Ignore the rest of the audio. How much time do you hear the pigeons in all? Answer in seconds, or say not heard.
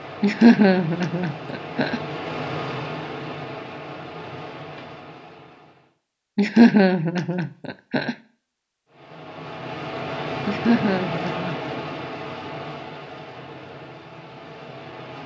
not heard.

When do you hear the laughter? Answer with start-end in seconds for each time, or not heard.
0.2-2.0, 6.3-8.2, 10.4-11.8.